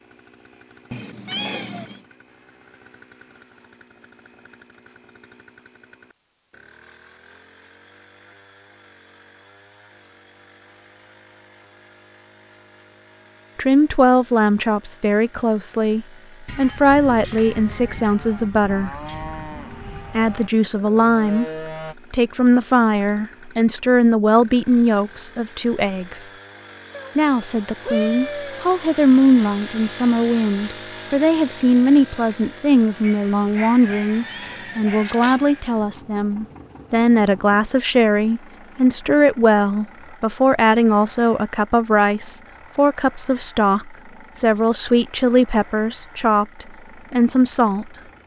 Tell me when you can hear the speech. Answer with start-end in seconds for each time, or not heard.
13.6-18.9, 20.1-26.3, 27.1-47.9.